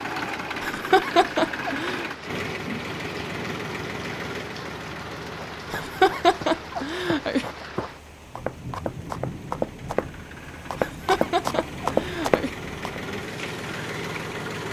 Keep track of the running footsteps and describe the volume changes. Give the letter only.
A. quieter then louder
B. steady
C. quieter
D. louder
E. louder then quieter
D.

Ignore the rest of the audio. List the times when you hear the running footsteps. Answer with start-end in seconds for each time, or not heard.
5.0-13.0.